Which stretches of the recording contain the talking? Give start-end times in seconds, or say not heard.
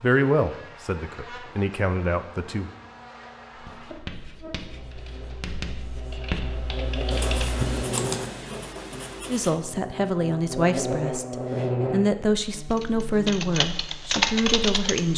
0.0-2.7, 9.2-15.1.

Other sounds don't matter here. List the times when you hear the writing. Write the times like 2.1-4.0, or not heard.
3.5-9.6.